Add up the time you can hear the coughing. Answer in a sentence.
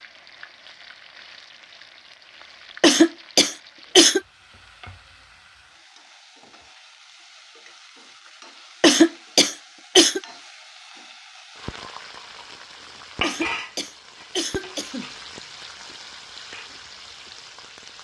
You can hear the coughing for 5 seconds altogether.